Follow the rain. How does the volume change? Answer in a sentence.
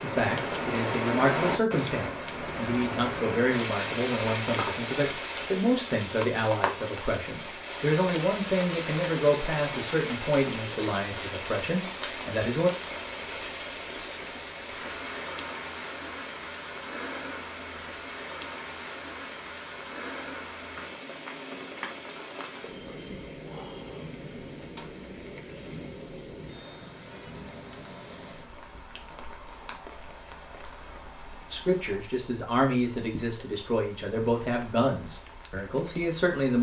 The volume of the rain goes down.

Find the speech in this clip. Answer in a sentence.
The speech can be heard from 0.0 to 12.7 s and from 31.5 to 36.5 s.